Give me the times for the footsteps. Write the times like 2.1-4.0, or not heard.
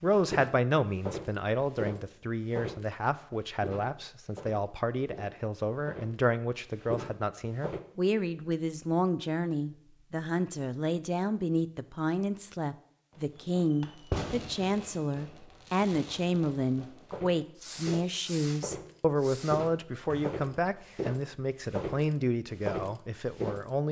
0.1-7.8, 17.1-23.6.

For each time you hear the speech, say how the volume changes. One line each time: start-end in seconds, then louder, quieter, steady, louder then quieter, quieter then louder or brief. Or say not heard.
0.0-23.8 steady.